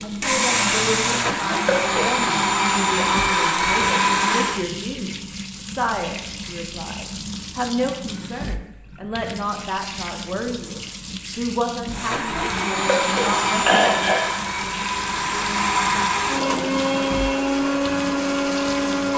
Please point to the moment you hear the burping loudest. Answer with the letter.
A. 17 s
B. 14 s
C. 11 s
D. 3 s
B.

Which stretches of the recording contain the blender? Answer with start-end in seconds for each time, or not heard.
0.0-4.7, 11.9-19.1.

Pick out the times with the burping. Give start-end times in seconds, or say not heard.
1.5-2.2, 12.8-14.2.